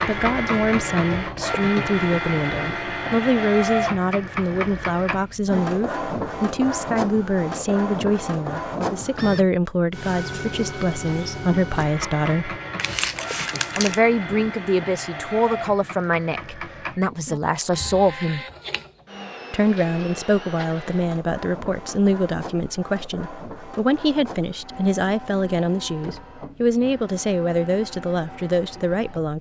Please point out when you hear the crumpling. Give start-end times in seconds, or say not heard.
12.8-14.0.